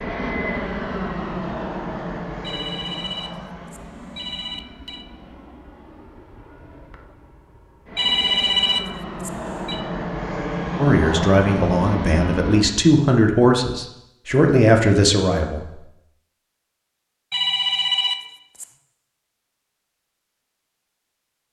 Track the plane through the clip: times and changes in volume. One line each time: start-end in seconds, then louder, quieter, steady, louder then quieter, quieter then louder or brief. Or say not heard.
0.0-12.8 quieter then louder.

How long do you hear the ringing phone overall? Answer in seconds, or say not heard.
6 s.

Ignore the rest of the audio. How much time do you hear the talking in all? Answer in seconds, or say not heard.
5 s.